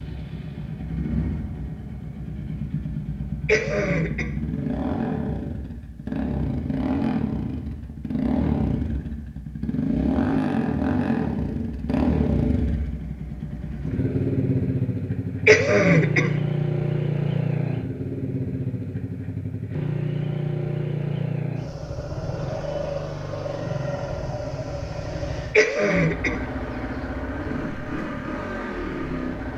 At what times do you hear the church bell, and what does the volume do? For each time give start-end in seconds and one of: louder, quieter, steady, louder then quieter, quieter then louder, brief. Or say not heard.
not heard.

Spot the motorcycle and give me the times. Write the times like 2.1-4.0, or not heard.
0.0-29.5.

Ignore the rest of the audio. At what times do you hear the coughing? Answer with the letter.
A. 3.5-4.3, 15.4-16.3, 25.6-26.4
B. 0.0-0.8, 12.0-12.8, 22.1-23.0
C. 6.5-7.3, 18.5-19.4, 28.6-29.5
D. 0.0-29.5
A.